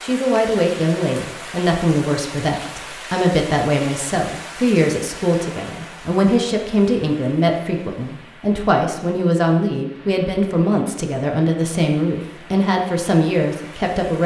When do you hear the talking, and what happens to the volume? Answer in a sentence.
You can hear the talking from 0.0 to 14.2 s, at a steady volume.